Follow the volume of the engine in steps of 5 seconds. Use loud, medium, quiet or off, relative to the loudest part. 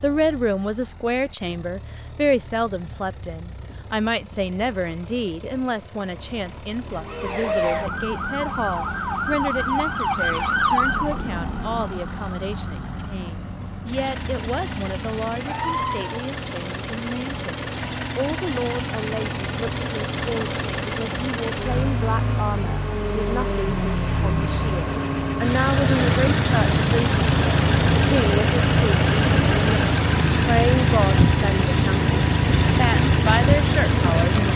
quiet, quiet, quiet, medium, medium, loud, loud.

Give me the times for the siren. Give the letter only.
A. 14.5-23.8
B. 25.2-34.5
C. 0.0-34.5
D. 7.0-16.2
D.